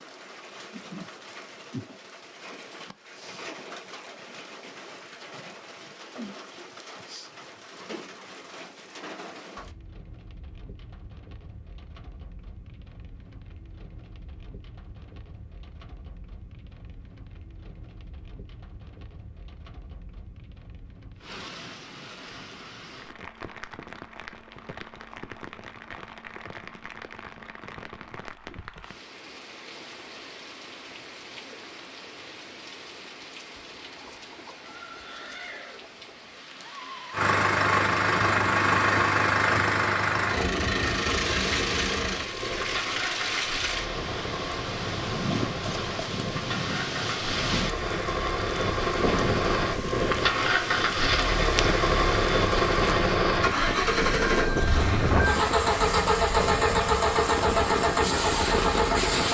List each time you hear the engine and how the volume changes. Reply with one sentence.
The engine can be heard from 37.1 to 59.2 s, getting quieter then louder.